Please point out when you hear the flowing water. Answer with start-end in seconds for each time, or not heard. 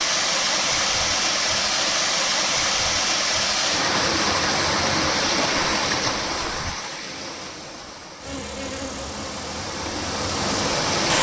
0.0-11.1.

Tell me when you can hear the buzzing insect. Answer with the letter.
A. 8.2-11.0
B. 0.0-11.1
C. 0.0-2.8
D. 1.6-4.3
A.